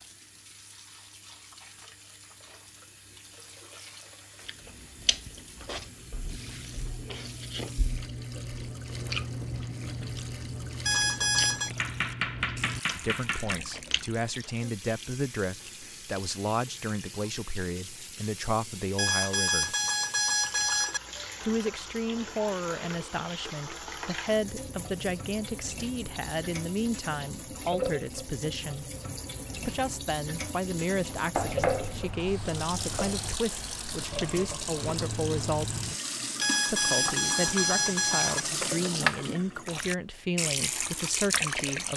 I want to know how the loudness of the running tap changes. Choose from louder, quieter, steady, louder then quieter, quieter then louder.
louder.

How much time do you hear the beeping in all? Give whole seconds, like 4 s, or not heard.
5 s.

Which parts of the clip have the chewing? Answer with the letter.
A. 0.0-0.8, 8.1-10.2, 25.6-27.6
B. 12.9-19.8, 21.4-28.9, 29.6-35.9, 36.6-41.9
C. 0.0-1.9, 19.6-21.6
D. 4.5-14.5
D.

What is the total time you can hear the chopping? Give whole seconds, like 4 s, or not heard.
4 s.